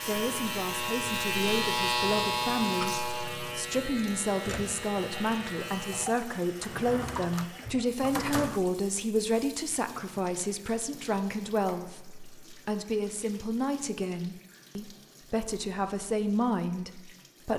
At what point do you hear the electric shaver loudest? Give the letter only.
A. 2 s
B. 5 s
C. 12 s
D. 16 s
A.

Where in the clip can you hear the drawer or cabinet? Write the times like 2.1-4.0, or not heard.
6.6-8.6.